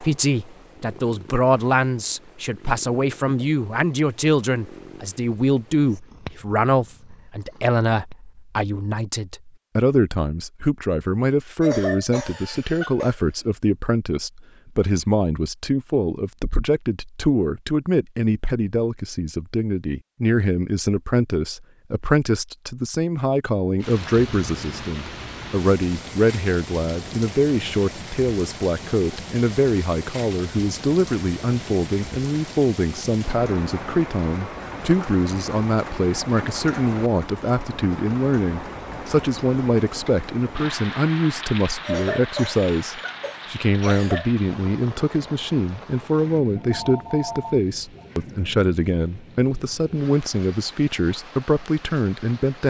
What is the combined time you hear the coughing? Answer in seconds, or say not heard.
4 s.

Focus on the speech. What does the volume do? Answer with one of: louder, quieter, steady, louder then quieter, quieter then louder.
steady.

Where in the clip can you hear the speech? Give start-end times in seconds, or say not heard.
0.0-52.6.